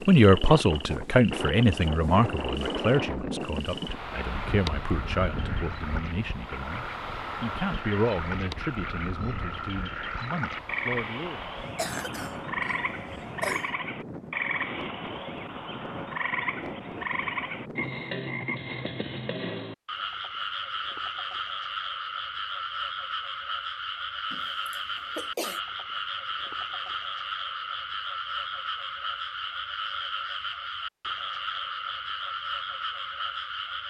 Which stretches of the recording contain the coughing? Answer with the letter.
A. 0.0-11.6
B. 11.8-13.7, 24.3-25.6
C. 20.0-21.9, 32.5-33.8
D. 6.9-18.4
B.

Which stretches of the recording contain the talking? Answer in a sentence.
The talking can be heard from 0.0 to 11.6 s.